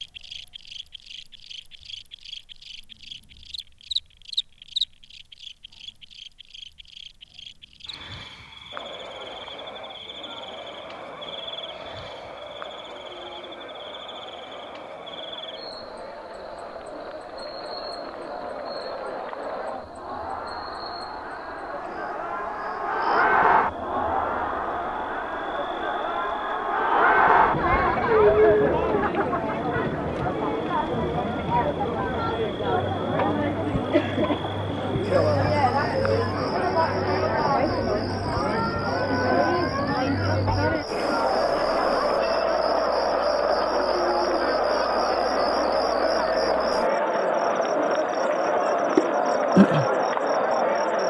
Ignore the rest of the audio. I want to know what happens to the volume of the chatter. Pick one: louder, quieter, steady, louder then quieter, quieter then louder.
louder.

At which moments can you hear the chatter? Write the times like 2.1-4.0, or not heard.
8.7-51.0.